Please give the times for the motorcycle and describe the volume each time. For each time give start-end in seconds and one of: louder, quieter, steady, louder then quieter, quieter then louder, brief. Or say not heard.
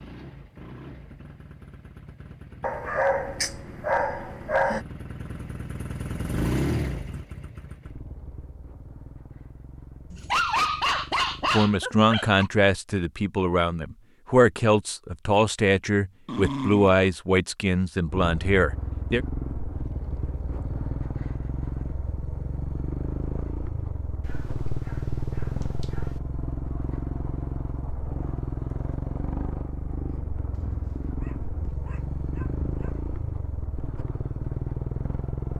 0.0-11.6 louder then quieter
18.1-35.5 steady.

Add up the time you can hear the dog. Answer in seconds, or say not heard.
10 s.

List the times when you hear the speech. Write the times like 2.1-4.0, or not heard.
11.5-19.2.